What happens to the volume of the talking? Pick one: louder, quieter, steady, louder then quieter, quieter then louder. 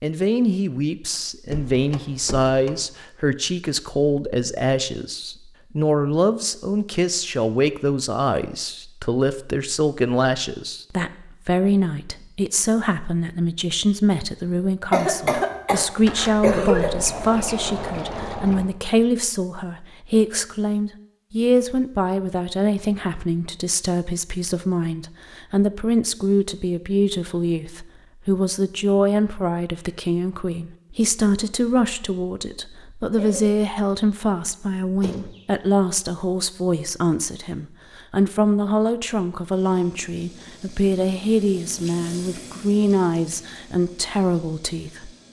steady.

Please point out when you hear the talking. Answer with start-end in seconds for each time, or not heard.
0.0-45.1.